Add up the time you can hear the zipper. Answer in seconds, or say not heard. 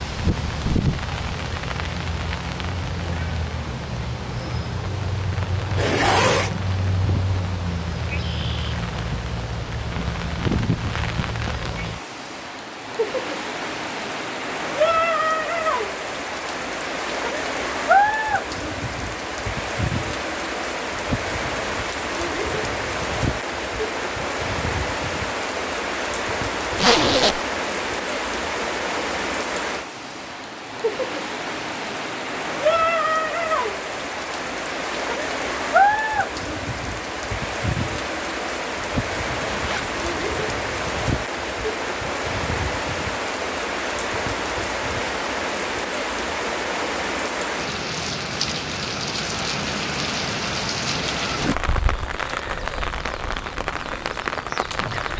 2 s.